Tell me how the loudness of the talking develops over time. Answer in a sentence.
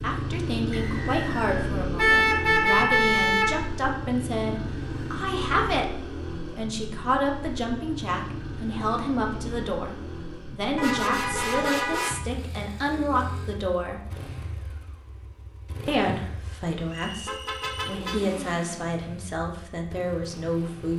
The loudness of the talking stays about the same.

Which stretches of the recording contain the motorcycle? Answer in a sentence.
The motorcycle can be heard from 0.0 to 20.9 s.